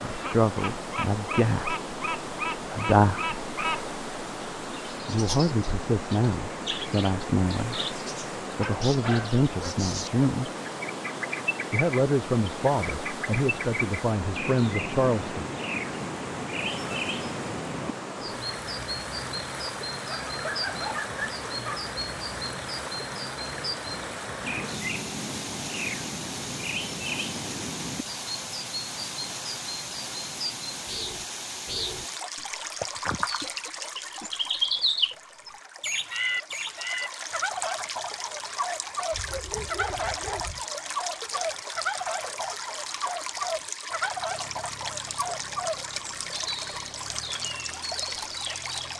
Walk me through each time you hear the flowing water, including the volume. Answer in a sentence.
The flowing water can be heard from 0.0 to 48.9 s, at a steady volume.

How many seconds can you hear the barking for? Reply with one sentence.
You can hear the barking for 5 seconds altogether.